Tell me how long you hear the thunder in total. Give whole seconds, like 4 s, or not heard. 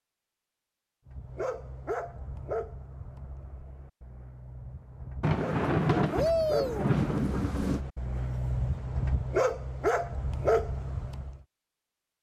3 s.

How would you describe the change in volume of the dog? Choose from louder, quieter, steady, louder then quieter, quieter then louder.
quieter then louder.